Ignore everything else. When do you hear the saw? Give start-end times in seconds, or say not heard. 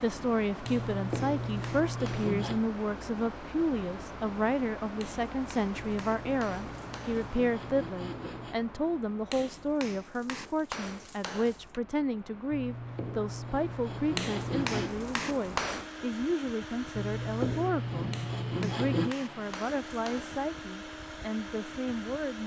0.7-2.6, 5.8-8.6, 12.5-14.9, 16.9-19.1.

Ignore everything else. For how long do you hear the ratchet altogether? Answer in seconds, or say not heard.
not heard.